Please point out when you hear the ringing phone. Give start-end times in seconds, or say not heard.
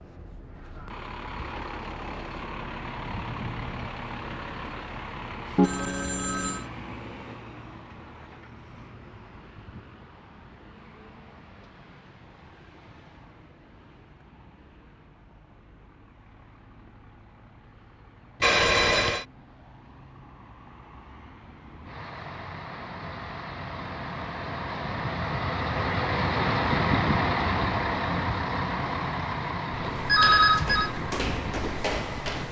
5.5-6.7, 18.4-19.2, 30.1-30.9.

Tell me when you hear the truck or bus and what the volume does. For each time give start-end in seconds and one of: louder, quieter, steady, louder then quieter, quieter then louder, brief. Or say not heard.
0.0-32.4 quieter then louder.